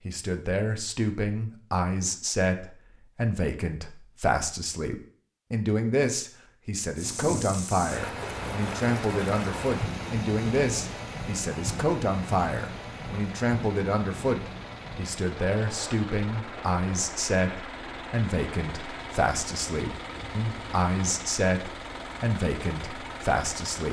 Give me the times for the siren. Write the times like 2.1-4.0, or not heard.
not heard.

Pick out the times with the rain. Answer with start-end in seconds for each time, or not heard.
7.0-23.8.